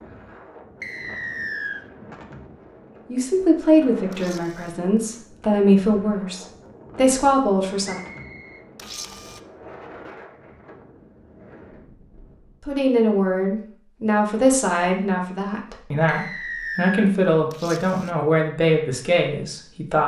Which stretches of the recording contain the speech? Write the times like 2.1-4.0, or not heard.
3.0-8.0, 12.6-20.0.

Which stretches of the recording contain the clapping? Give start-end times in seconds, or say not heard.
not heard.